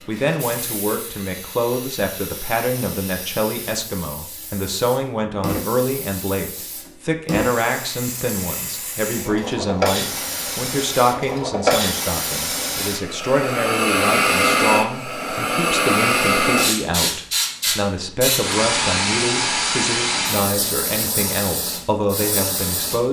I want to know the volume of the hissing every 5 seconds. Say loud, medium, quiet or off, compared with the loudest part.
quiet, medium, loud, loud, medium.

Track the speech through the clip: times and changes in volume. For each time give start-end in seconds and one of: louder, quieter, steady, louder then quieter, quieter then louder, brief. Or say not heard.
0.1-23.0 steady.